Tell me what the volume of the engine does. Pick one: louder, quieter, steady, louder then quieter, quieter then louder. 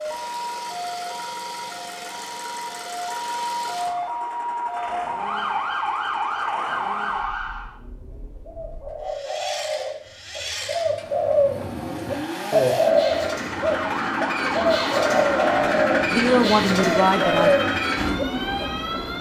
louder.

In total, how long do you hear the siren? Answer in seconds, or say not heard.
13 s.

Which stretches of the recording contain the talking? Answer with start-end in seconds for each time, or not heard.
16.1-17.6.